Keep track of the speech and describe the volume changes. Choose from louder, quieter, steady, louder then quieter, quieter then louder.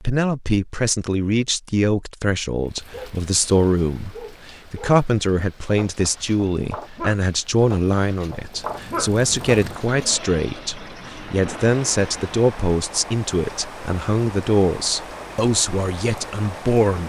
steady.